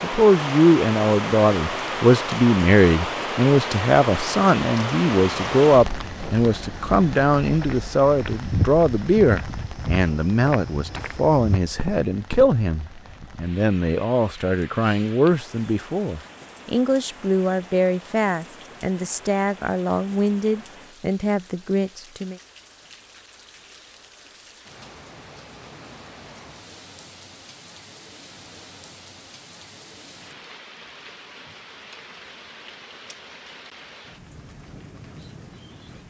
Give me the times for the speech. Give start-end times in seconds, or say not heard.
0.0-22.4.